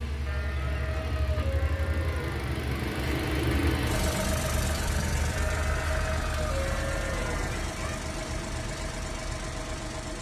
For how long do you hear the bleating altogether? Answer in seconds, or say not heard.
5 s.